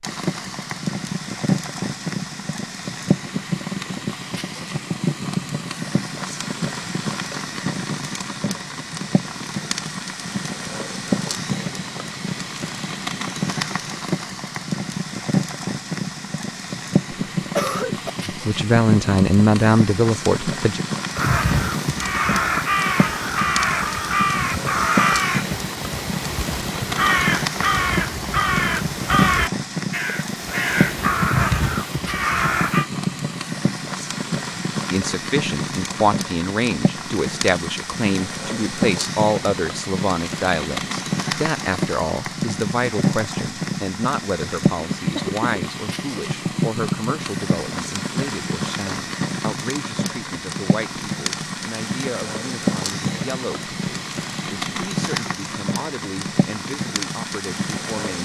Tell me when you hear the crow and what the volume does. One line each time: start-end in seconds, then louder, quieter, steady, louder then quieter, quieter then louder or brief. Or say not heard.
21.1-32.9 steady.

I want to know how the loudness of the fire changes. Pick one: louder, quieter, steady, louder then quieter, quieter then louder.
steady.